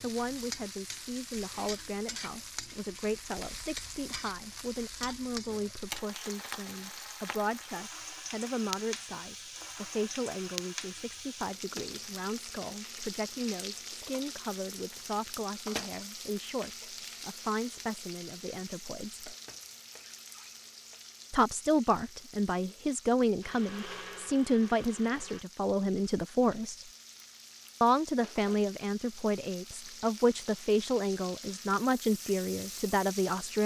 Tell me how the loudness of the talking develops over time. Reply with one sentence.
The loudness of the talking goes up.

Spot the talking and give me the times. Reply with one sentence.
The talking can be heard from 0.0 to 19.3 s, from 21.3 to 26.9 s and from 27.8 to 33.6 s.